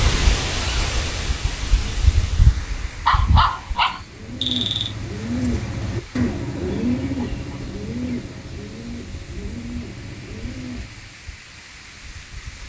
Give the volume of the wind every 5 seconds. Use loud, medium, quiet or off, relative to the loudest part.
loud, quiet, quiet.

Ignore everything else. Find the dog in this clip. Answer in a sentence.
You can hear the dog from 3.0 to 4.9 s.